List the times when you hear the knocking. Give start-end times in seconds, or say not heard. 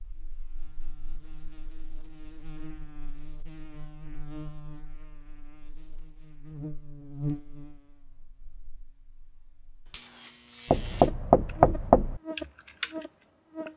10.7-12.2.